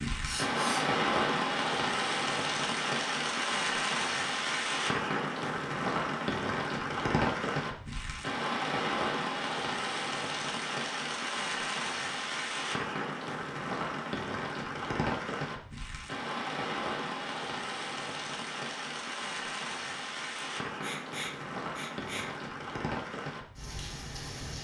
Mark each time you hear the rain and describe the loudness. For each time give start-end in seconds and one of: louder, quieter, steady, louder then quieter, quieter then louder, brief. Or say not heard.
0.0-24.6 quieter.